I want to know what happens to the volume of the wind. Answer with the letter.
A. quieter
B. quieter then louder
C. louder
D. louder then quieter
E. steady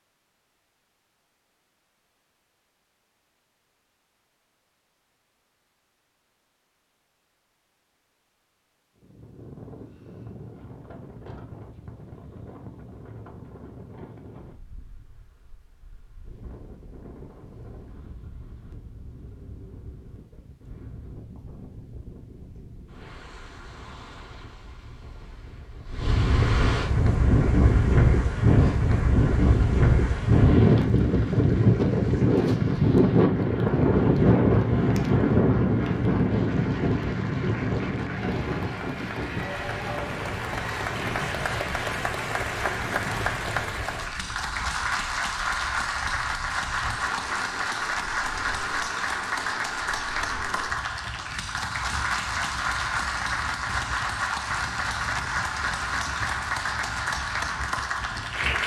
D.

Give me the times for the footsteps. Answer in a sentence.
You can't hear the footsteps here.